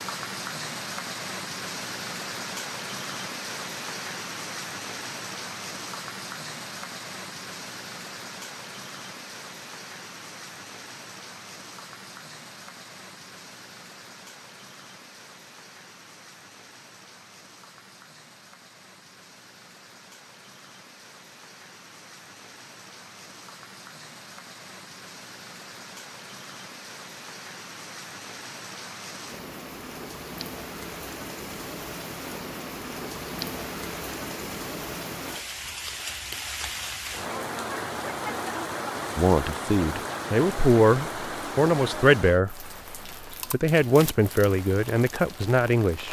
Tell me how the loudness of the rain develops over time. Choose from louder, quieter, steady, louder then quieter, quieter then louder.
quieter then louder.